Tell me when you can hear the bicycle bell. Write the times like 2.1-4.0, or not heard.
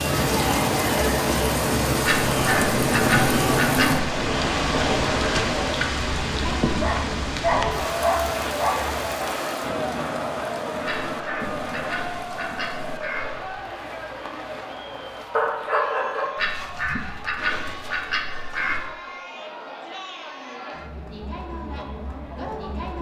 not heard.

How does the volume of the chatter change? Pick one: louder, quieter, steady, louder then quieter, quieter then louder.
quieter.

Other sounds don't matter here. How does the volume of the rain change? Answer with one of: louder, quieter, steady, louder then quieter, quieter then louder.
quieter.